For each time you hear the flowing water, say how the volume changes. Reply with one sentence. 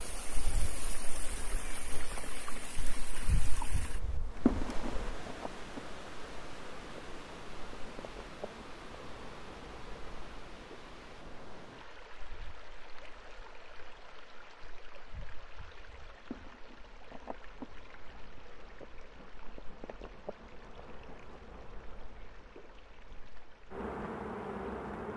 You can hear the flowing water from 0.0 to 25.1 s, getting quieter.